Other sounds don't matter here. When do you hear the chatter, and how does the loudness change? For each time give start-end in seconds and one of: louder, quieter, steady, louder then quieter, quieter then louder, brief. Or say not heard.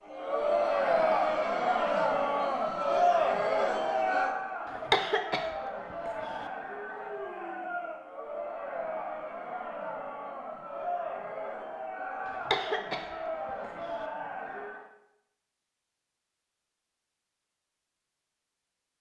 0.0-14.9 quieter.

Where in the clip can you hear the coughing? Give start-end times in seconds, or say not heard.
4.7-6.5, 12.2-14.1.